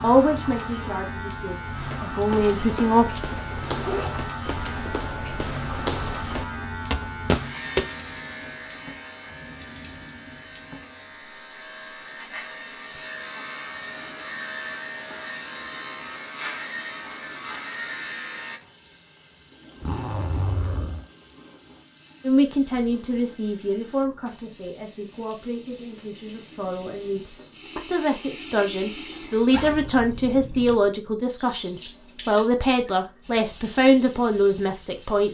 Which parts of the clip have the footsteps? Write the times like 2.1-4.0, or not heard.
1.6-7.9.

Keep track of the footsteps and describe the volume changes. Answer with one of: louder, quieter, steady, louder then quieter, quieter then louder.
louder.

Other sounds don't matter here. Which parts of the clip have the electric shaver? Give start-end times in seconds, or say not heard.
0.0-18.6.